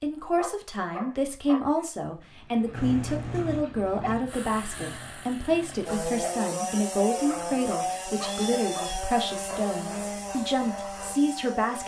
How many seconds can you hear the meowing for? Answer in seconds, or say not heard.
2 s.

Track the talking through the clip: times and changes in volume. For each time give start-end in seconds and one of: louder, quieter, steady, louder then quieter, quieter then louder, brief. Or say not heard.
0.0-11.8 steady.